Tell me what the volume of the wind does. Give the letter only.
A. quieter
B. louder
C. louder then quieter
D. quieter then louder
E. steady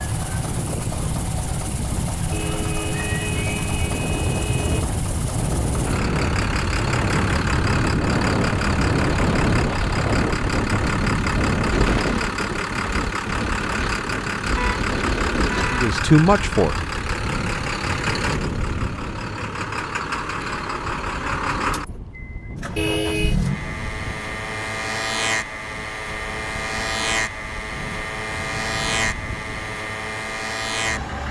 C.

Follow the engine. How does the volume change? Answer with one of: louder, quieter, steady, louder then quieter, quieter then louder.
steady.